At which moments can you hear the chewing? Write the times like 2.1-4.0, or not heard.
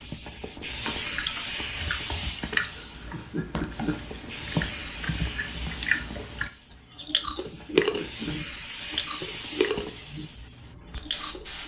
0.8-10.2, 10.9-11.4.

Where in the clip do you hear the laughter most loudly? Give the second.
4 s.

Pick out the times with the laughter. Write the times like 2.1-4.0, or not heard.
2.7-4.0, 7.3-8.3.